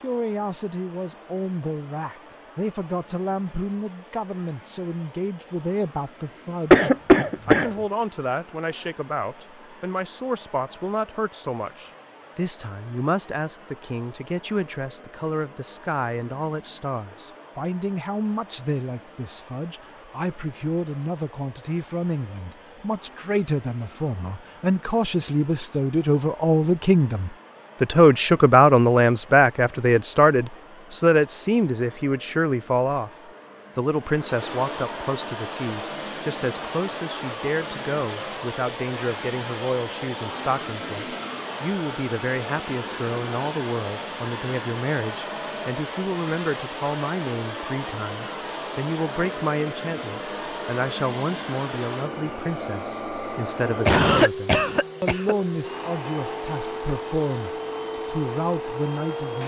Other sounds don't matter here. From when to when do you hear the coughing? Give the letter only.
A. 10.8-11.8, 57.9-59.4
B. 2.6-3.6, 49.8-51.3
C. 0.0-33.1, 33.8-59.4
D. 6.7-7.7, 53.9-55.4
D.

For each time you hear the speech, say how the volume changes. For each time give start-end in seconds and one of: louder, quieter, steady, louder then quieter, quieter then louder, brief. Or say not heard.
0.0-33.1 louder
33.8-59.4 steady.